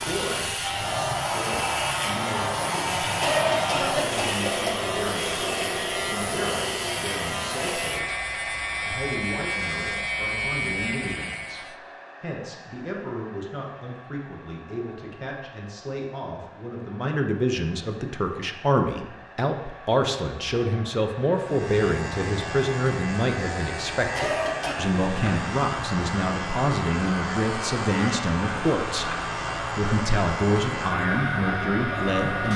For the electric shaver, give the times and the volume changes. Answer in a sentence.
The electric shaver can be heard from 0.0 to 11.8 s, at a steady volume; and from 21.4 to 32.5 s, at a steady volume.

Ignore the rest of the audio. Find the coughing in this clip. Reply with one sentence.
You can hear the coughing from 3.2 to 4.9 s and from 24.1 to 24.8 s.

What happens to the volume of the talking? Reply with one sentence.
The volume of the talking goes up.